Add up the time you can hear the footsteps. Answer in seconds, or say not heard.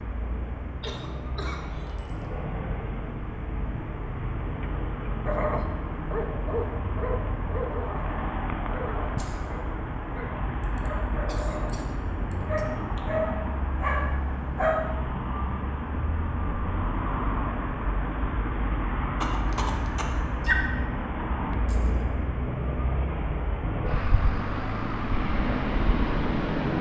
not heard.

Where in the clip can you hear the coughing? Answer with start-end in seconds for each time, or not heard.
0.8-1.9, 10.6-12.7, 19.2-20.6.